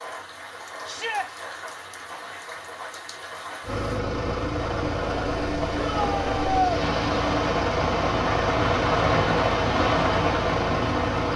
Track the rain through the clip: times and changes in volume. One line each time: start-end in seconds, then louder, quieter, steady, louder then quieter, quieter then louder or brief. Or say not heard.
0.0-11.3 louder.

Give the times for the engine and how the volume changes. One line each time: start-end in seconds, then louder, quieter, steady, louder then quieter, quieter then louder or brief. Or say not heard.
3.6-11.3 steady.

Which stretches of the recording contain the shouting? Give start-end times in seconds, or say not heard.
0.8-1.3, 5.8-6.8.